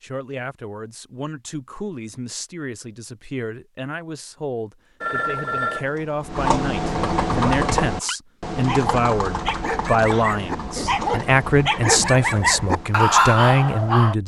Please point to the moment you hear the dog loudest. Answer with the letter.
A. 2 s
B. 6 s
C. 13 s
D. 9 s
C.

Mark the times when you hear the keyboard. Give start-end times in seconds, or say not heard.
5.3-14.1.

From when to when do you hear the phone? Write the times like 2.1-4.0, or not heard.
5.0-5.8.